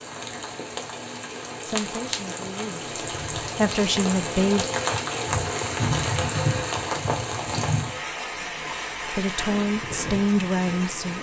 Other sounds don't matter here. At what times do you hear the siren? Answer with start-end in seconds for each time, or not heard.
not heard.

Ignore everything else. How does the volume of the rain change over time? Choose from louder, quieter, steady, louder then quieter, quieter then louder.
louder then quieter.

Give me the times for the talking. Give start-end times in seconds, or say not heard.
1.6-4.7, 9.1-11.1.